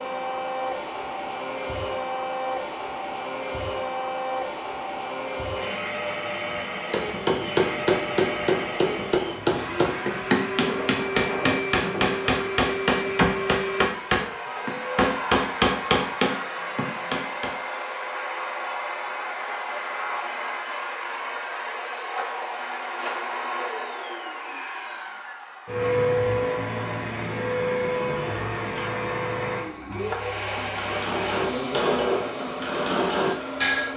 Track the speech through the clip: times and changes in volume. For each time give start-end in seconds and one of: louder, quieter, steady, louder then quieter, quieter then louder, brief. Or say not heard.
not heard.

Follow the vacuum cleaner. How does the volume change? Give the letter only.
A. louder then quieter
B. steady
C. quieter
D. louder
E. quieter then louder
B.